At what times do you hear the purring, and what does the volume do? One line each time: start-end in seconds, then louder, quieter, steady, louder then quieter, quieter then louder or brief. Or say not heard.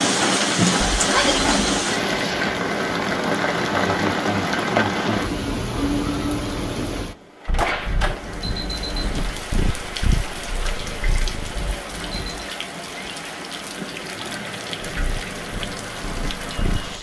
7.5-11.6 louder then quieter
14.8-16.9 brief.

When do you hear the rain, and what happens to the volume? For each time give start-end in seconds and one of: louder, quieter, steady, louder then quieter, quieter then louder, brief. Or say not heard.
0.0-16.9 quieter.